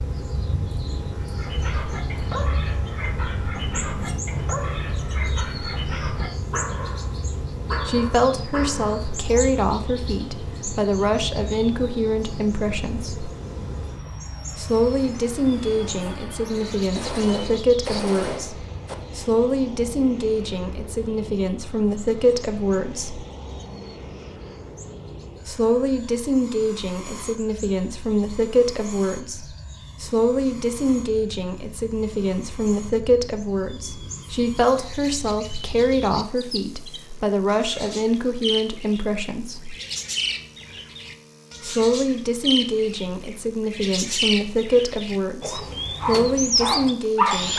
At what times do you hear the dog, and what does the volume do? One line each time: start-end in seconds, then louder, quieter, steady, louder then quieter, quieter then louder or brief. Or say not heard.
1.1-9.4 steady
45.5-47.5 brief.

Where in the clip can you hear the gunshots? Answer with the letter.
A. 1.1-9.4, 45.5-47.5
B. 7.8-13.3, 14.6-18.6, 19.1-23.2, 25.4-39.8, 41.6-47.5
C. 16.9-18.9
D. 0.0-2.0
C.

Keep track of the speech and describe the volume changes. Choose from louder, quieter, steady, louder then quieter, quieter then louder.
steady.